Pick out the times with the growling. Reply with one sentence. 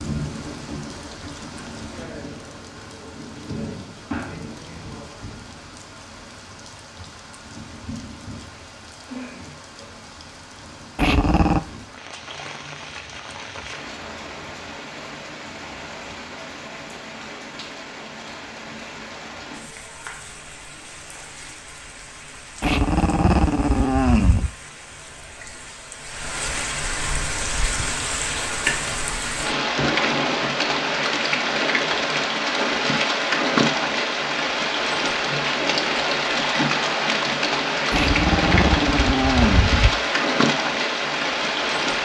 You can hear the growling from 10.9 to 11.6 s, from 22.6 to 24.5 s and from 37.9 to 39.9 s.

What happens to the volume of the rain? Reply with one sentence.
The volume of the rain goes up.